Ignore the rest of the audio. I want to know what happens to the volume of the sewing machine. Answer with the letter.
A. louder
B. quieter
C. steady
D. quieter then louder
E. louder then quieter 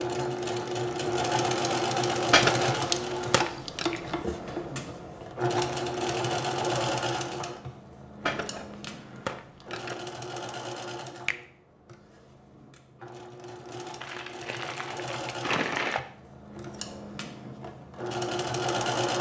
D.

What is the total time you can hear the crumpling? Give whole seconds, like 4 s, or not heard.
5 s.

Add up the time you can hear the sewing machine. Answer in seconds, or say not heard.
19 s.